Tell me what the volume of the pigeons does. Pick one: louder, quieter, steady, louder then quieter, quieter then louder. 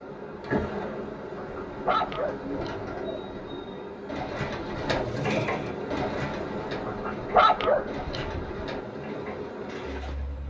louder then quieter.